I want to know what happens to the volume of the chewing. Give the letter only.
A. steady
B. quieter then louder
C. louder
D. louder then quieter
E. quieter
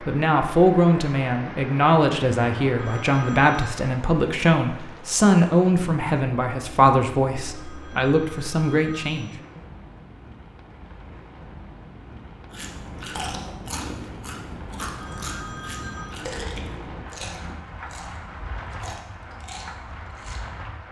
E.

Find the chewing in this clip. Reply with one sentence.
You can hear the chewing from 12.5 to 20.6 s.